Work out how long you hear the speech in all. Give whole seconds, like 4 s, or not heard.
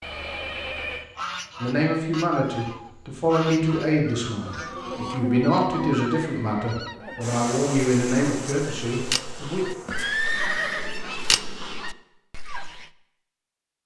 8 s.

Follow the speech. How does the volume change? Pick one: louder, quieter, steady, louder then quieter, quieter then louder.
steady.